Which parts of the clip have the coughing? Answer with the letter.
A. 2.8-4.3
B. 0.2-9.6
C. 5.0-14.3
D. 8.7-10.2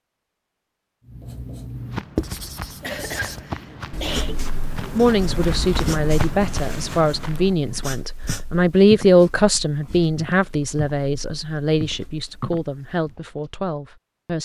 A.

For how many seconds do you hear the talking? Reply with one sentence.
You can hear the talking for 9 seconds altogether.